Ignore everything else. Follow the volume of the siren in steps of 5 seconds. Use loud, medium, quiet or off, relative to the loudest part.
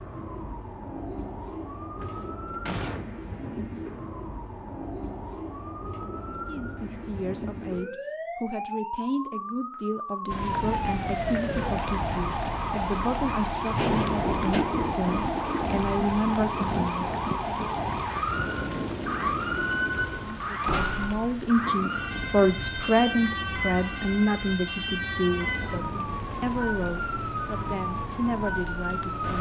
medium, medium, loud, loud, loud, loud.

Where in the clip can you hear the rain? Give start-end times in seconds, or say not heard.
10.2-29.3.